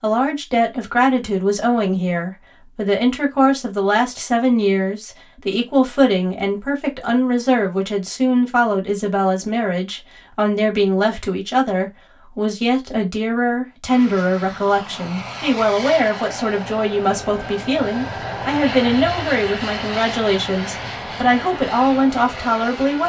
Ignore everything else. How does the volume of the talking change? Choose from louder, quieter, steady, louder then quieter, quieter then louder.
steady.